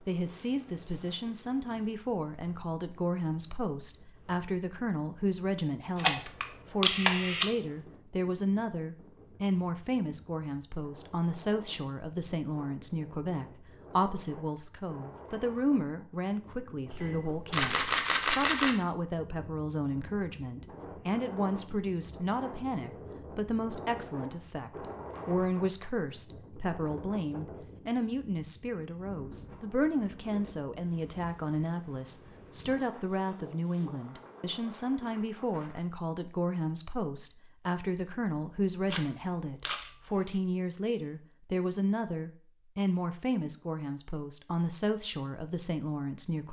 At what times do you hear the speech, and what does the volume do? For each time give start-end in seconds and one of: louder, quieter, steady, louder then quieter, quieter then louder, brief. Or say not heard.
0.0-46.4 steady.